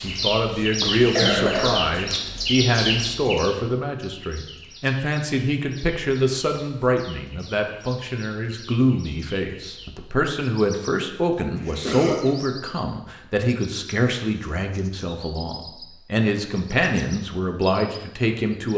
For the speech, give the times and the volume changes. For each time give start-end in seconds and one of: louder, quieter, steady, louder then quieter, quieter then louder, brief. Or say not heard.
0.0-18.7 steady.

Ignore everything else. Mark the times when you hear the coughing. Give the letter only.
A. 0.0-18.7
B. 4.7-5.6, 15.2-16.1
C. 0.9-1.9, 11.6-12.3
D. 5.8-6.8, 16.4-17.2
C.